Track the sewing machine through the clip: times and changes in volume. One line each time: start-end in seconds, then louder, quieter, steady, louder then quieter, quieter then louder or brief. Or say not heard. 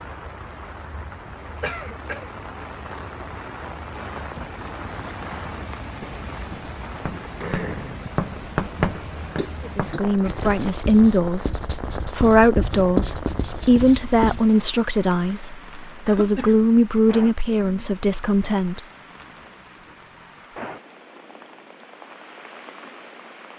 not heard.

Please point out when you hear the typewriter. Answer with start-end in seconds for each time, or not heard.
not heard.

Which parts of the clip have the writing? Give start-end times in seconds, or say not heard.
4.2-14.4.